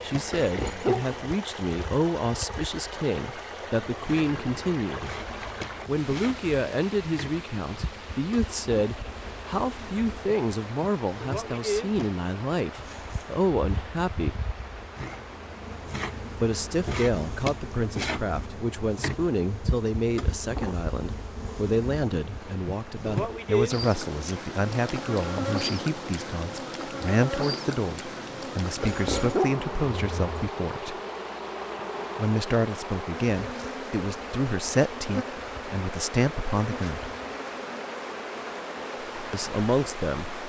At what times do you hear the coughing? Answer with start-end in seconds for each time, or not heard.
not heard.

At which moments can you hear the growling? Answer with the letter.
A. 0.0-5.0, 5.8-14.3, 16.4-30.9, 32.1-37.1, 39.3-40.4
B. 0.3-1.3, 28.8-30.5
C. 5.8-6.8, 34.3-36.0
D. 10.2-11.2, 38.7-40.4
B.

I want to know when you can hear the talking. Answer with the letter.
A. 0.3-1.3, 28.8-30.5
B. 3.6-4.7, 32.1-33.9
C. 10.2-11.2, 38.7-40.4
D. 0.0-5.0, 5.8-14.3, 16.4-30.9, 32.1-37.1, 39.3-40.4
D.